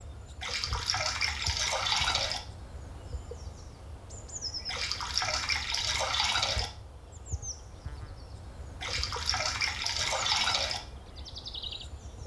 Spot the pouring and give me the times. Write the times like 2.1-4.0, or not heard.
0.4-2.4, 4.7-6.7, 8.8-10.8.